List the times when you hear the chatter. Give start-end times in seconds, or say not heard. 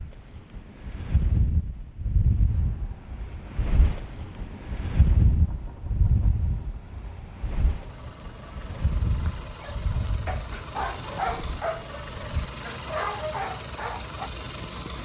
not heard.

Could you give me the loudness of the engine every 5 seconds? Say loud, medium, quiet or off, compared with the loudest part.
quiet, medium, loud.